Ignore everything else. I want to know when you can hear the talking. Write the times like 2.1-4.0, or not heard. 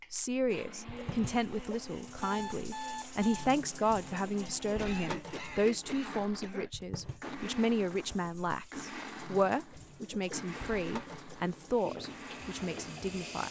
0.1-13.4.